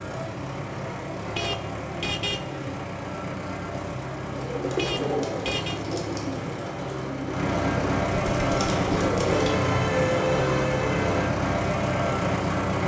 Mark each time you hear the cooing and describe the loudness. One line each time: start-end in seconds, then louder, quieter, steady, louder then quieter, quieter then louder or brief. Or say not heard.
4.3-9.6 quieter then louder.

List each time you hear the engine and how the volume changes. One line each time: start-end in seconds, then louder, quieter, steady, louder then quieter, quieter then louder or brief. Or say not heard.
0.0-12.8 louder.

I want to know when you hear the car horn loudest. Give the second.
10 s.